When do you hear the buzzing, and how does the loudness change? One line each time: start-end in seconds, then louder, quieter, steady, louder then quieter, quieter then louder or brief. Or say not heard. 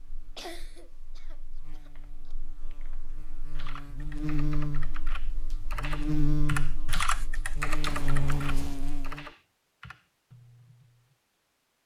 0.0-9.2 louder.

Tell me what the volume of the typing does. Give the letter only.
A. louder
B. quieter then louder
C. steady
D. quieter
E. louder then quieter
E.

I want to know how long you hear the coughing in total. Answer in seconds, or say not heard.
3 s.